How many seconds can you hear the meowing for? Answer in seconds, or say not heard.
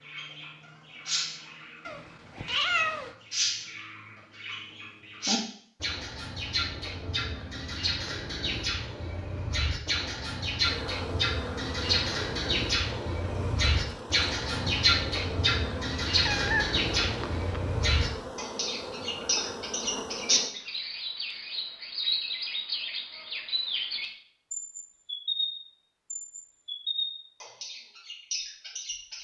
3 s.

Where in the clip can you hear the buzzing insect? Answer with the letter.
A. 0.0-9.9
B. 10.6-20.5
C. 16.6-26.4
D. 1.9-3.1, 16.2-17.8
B.